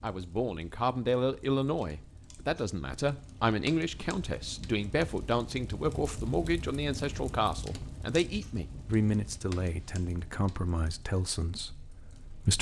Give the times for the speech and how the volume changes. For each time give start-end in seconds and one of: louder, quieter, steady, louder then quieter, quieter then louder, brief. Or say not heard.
0.0-12.5 quieter.